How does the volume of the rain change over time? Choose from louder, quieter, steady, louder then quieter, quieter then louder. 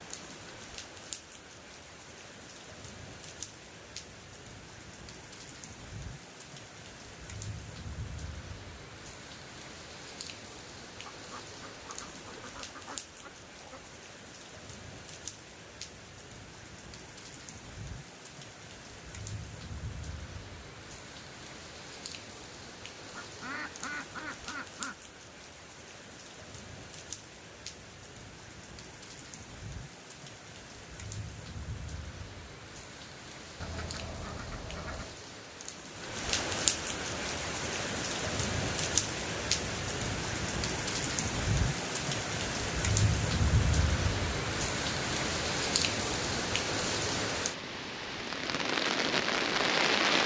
louder.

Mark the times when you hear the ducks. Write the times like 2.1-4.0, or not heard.
11.1-13.9, 23.1-25.0, 33.6-35.1.